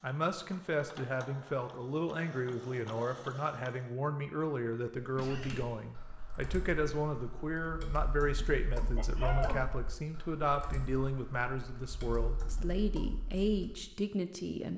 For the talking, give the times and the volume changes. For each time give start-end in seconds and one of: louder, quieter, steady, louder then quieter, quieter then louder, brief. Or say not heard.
0.0-14.7 steady.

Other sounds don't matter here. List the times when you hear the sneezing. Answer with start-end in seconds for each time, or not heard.
5.0-5.7, 8.9-9.7.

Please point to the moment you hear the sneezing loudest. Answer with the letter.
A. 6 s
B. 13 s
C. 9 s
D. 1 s
C.